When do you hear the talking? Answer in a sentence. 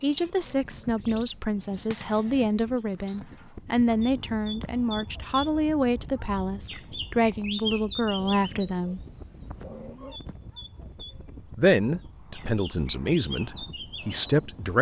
The talking can be heard from 0.0 to 9.0 s and from 11.6 to 14.7 s.